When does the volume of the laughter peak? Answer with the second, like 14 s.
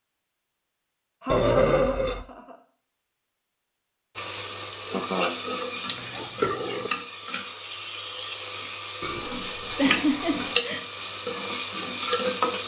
10 s.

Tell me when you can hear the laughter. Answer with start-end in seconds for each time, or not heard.
1.2-2.5, 4.9-5.3, 9.8-10.8.